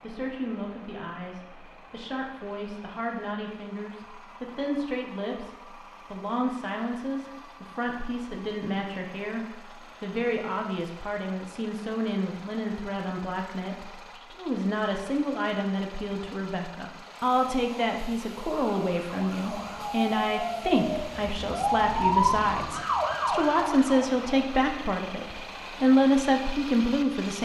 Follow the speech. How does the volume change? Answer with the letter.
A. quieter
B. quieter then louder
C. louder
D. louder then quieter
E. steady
C.